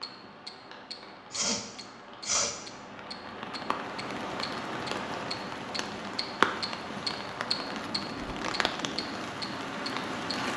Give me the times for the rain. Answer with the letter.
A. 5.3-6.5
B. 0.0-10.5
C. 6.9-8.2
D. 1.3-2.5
B.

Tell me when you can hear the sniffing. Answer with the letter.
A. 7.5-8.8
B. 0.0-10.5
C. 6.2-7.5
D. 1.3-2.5
D.